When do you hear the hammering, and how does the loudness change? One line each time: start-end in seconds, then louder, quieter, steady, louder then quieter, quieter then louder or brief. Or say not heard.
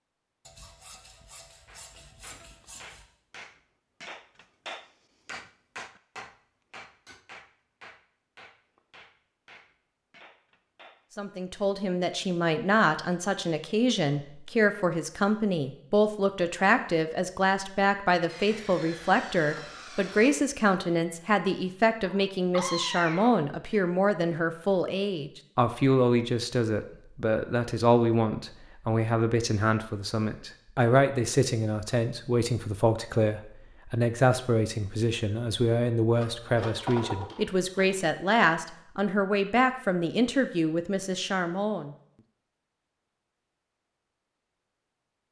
1.6-11.1 louder then quieter.